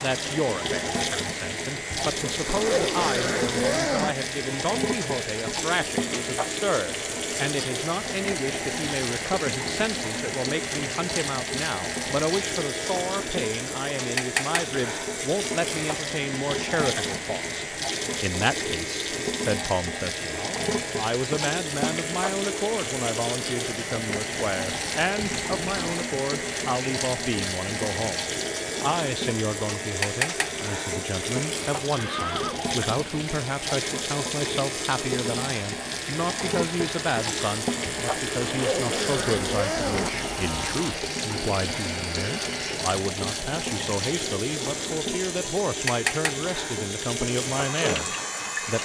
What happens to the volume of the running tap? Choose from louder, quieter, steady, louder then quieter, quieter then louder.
steady.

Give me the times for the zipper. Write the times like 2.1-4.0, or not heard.
1.9-4.2, 25.2-26.1, 37.9-40.2.